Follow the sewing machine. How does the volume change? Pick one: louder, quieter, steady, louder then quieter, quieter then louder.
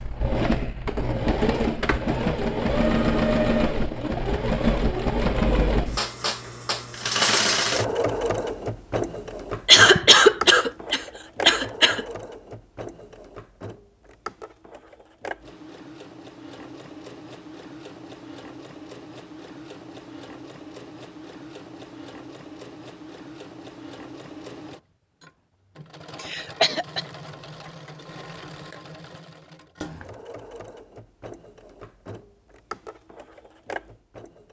quieter.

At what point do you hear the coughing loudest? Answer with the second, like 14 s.
10 s.